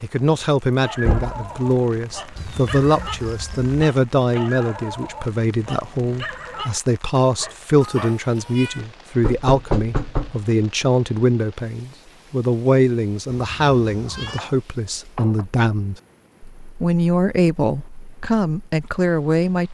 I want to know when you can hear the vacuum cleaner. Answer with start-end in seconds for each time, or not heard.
not heard.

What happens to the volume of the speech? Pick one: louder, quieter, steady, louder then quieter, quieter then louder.
steady.